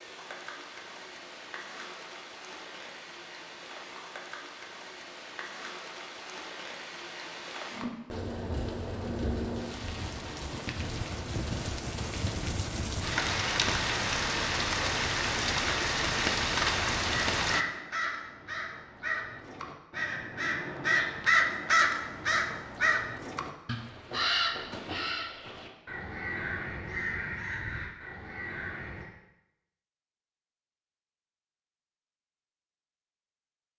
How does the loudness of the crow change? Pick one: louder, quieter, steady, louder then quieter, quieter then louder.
louder then quieter.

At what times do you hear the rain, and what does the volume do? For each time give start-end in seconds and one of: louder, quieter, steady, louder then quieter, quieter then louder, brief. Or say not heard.
0.0-17.6 louder.